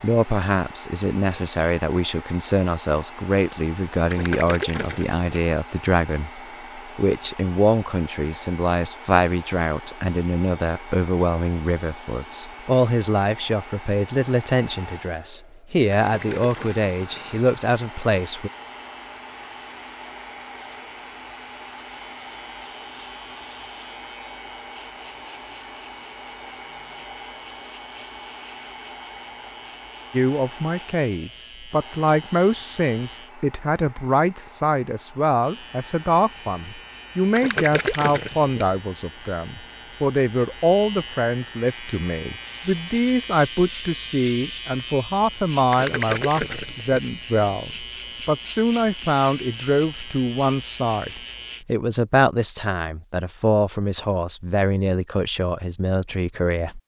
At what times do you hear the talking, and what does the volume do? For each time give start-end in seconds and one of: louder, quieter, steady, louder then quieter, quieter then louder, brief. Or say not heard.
0.0-18.5 steady
30.1-56.8 steady.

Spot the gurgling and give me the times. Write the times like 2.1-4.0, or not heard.
4.1-5.2, 15.9-17.2, 37.4-38.6, 45.7-47.0.